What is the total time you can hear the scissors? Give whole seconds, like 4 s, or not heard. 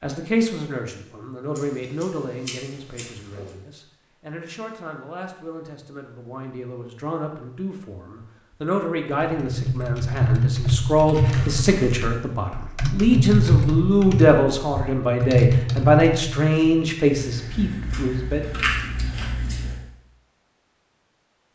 5 s.